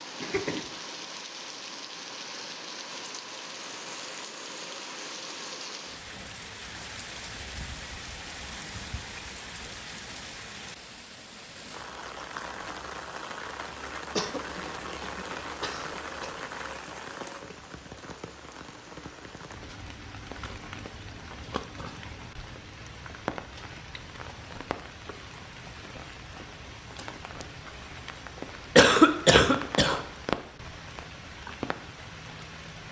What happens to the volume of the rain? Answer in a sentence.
The volume of the rain stays about the same.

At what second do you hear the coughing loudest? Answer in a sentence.
The volume of the coughing peaks at 29 seconds.